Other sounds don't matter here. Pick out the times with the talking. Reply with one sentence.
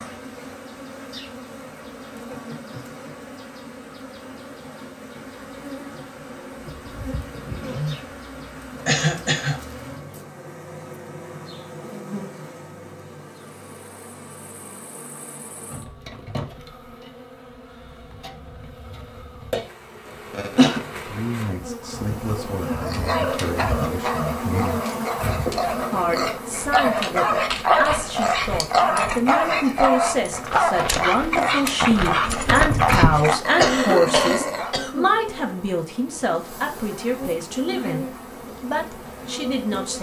You can hear the talking from 21.1 to 24.9 s and from 25.9 to 39.9 s.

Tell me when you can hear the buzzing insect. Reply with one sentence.
You can hear the buzzing insect from 0.0 to 39.9 s.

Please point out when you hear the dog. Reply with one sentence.
You can hear the dog from 22.6 to 34.8 s.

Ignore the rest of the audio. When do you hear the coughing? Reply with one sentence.
You can hear the coughing from 8.8 to 9.6 s, from 20.1 to 20.8 s and from 33.5 to 35.0 s.